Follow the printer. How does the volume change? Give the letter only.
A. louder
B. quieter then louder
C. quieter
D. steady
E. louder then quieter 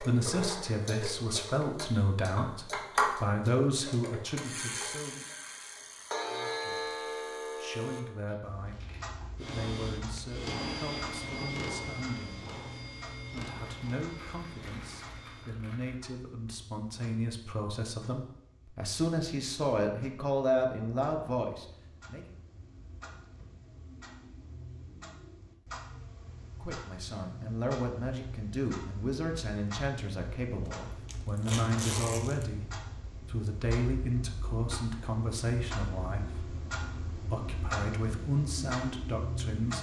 C.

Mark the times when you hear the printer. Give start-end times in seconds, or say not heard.
9.3-15.5.